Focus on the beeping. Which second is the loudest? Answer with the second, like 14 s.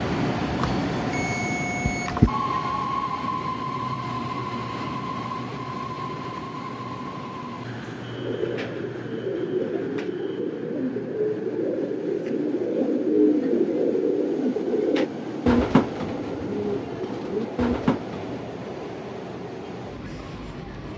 2 s.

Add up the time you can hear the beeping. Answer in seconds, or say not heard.
2 s.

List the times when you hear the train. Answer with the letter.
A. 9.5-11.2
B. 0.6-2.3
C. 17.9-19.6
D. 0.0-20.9
D.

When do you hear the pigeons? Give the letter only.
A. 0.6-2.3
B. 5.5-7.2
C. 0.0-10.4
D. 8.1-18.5
D.